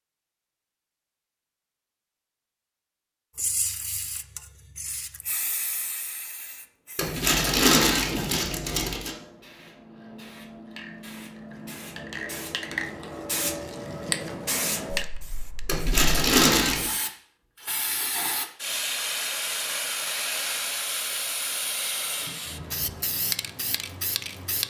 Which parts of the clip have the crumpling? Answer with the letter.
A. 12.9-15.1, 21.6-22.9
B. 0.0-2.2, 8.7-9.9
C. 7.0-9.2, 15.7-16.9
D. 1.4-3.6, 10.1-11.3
C.